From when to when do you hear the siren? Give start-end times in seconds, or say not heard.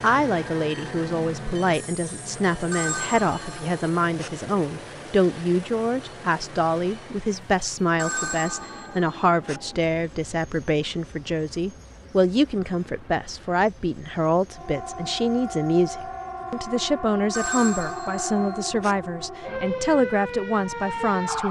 14.5-21.4.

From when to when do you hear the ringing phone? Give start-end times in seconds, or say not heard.
2.7-4.3, 8.0-9.6, 17.3-18.9.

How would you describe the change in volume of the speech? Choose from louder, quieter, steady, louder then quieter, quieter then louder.
steady.